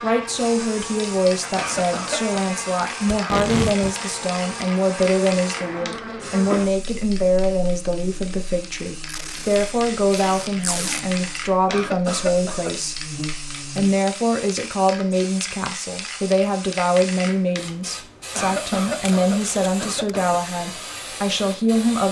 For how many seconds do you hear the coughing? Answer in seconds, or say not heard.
4 s.